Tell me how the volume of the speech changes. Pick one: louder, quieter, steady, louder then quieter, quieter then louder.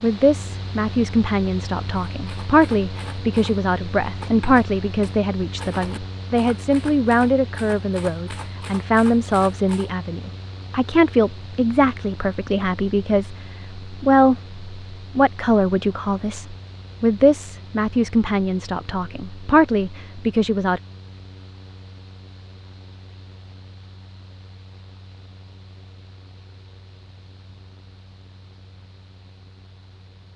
steady.